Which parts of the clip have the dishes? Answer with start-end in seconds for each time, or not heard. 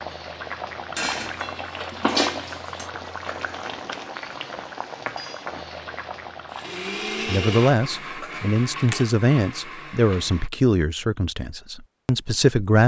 0.9-2.9, 8.2-9.1.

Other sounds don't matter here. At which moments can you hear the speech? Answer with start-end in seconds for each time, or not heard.
7.2-12.8.